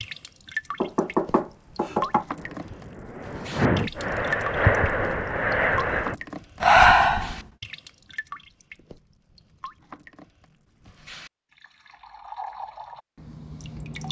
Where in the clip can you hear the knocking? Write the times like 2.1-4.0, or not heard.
0.8-2.2.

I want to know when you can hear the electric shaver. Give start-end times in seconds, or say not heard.
not heard.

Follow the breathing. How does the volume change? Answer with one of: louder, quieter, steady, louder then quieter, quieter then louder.
louder.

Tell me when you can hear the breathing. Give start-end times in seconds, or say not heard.
1.8-7.4.